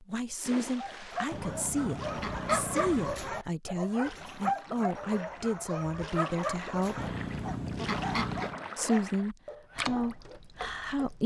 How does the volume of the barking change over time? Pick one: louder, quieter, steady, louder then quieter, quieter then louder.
quieter.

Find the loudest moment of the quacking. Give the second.
8 s.